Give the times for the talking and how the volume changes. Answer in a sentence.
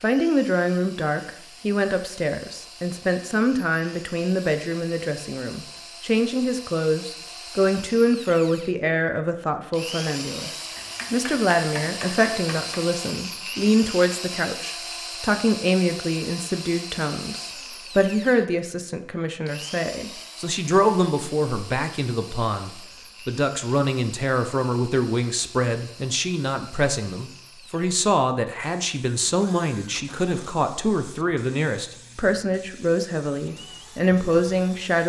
You can hear the talking from 0.0 to 35.0 s, at a steady volume.